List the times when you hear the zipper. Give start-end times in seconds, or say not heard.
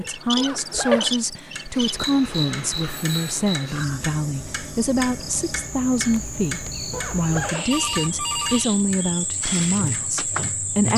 0.3-1.2, 6.9-7.8.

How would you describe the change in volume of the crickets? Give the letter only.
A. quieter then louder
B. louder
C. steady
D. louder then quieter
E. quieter
A.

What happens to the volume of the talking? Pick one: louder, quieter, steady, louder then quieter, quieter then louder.
steady.